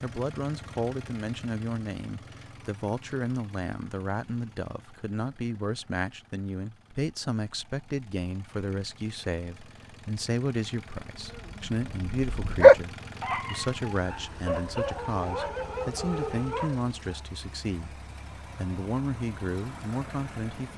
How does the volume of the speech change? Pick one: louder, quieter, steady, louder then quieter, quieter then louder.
steady.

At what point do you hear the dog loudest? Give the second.
13 s.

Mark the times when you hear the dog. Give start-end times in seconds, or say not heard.
11.2-17.2.